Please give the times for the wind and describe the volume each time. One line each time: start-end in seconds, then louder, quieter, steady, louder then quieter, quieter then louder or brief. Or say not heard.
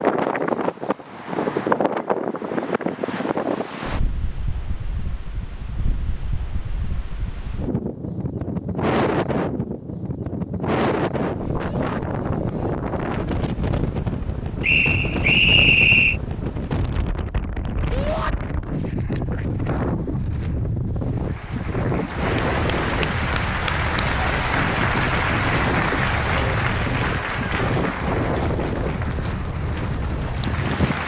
0.0-31.0 steady.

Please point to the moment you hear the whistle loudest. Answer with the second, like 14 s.
16 s.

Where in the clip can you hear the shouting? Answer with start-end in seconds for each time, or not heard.
11.6-12.0, 17.9-18.3.